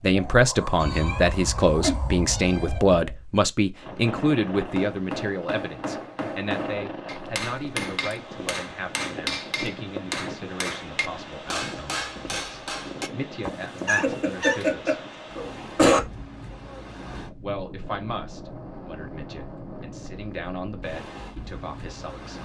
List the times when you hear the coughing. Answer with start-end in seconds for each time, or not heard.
14.0-16.0.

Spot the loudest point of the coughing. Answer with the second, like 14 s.
16 s.